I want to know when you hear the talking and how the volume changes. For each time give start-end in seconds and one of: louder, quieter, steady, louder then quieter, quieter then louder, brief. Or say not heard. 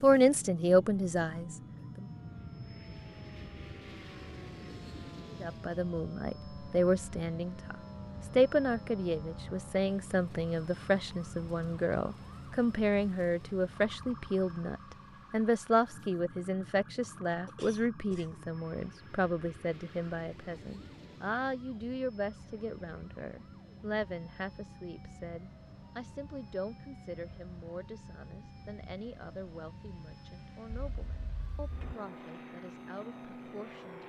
0.0-2.0 brief
5.3-34.0 quieter.